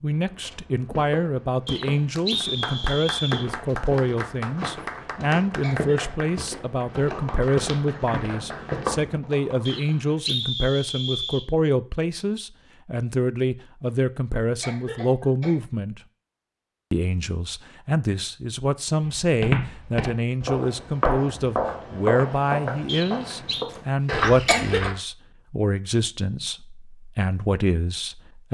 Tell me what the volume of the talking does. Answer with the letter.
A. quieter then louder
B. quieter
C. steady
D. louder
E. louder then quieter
C.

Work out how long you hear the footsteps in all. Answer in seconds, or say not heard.
15 s.